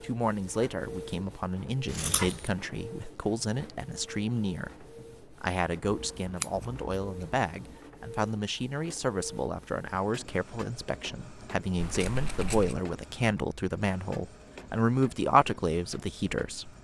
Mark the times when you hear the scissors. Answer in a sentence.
The scissors can be heard from 1.9 to 2.5 s, from 5.8 to 7.8 s and from 11.8 to 12.8 s.